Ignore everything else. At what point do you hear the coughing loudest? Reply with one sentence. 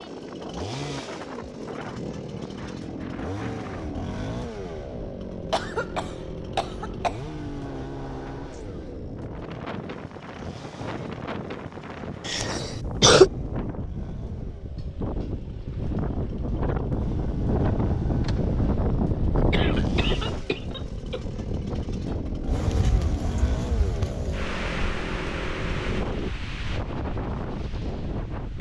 The loudest moment of the coughing is at 13 seconds.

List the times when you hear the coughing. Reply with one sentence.
You can hear the coughing from 5.5 to 7.3 s, from 12.2 to 13.3 s and from 19.5 to 21.2 s.